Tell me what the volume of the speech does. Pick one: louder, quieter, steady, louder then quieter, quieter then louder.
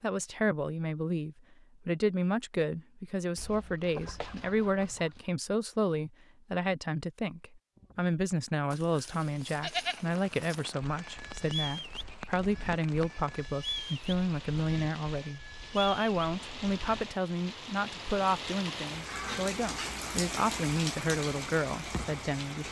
steady.